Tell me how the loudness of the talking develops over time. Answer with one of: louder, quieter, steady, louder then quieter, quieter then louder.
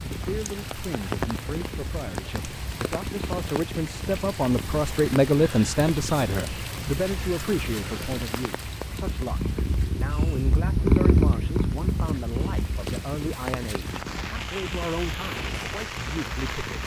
louder then quieter.